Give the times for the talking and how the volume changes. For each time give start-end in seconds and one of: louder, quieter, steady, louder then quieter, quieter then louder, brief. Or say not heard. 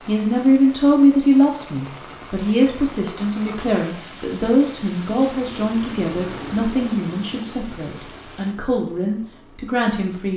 0.1-10.3 quieter.